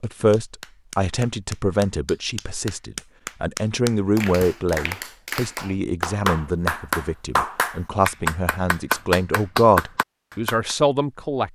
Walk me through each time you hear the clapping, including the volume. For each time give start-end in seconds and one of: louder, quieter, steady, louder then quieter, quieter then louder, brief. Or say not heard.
0.0-10.8 louder.